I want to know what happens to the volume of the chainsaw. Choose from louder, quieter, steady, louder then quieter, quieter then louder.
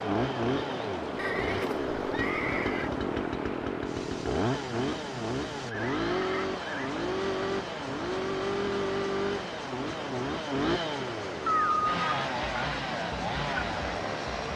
steady.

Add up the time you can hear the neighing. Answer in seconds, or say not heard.
4 s.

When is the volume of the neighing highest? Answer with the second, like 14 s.
12 s.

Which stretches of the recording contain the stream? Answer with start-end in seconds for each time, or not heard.
0.0-14.5.